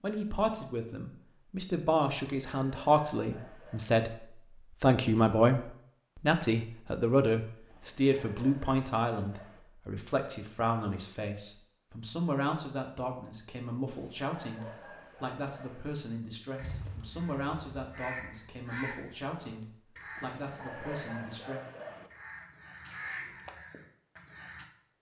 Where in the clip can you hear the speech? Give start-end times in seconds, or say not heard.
0.0-21.6.